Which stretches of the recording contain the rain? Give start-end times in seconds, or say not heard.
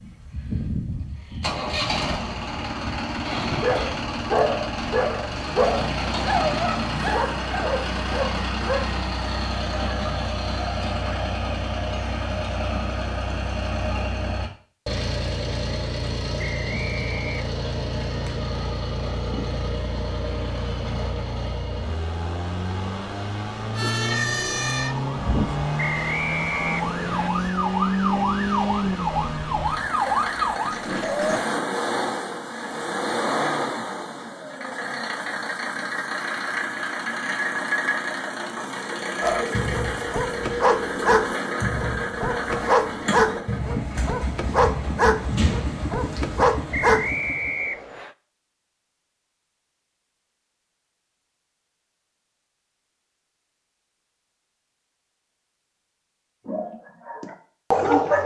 not heard.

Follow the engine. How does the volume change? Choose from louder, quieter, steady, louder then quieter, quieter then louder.
steady.